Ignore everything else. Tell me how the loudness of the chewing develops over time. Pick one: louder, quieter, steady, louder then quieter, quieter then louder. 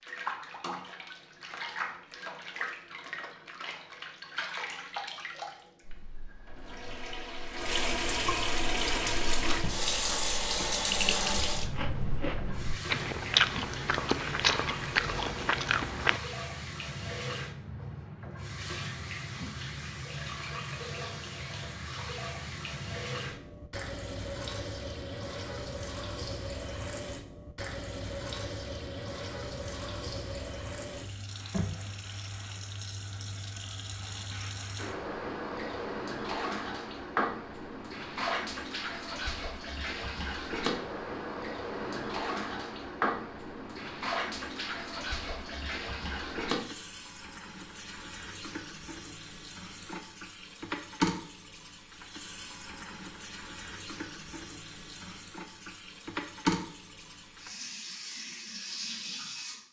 louder.